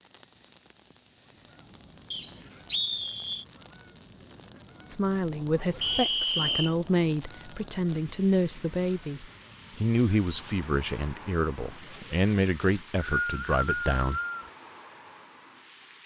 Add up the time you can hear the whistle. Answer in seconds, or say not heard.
4 s.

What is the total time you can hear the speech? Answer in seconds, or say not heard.
9 s.